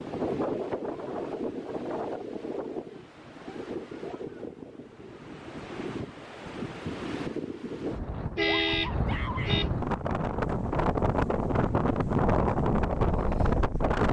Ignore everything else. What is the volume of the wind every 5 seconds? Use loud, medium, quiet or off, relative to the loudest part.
medium, medium, loud.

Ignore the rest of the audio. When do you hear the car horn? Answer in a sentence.
You can hear the car horn from 8.3 to 9.7 s.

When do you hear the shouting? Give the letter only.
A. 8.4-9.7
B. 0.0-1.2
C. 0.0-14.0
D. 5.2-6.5
A.